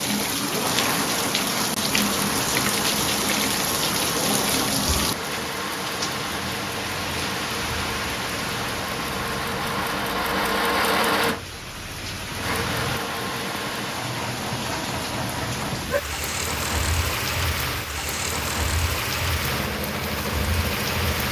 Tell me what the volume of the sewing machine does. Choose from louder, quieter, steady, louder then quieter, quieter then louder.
louder then quieter.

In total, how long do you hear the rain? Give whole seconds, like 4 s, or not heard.
21 s.